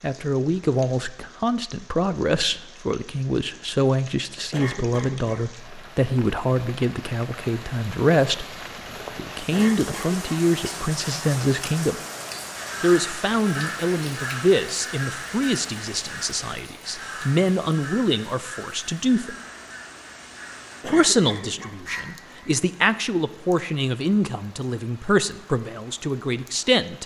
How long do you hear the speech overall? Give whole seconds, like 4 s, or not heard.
24 s.